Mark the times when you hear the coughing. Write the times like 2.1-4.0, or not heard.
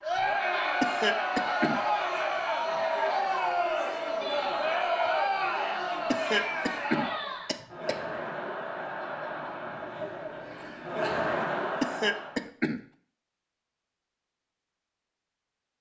0.8-1.8, 6.1-8.0, 11.8-12.8.